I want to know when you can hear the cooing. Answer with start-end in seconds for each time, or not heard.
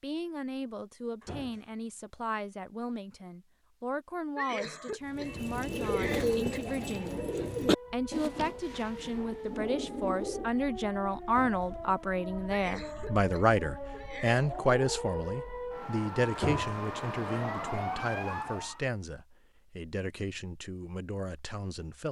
5.0-10.6.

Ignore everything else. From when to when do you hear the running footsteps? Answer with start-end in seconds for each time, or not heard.
not heard.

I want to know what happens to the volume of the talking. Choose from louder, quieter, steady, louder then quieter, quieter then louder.
louder then quieter.